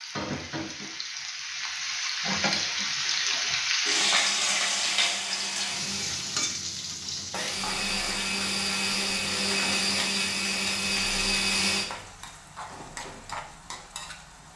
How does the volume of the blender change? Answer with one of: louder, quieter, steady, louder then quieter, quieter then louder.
louder.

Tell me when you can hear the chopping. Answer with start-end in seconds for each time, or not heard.
not heard.